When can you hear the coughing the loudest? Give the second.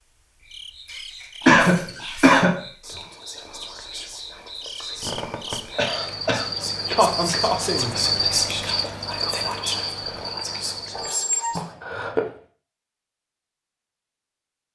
2 s.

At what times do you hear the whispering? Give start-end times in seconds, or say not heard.
1.4-11.8.